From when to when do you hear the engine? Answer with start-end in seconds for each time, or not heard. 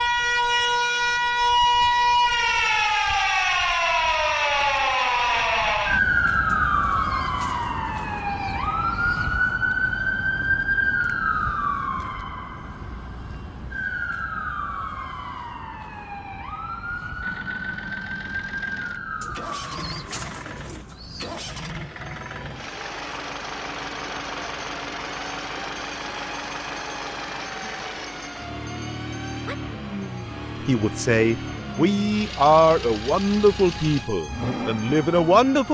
0.0-2.9, 17.2-35.6.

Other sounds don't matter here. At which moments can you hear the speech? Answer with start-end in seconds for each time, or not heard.
30.6-35.6.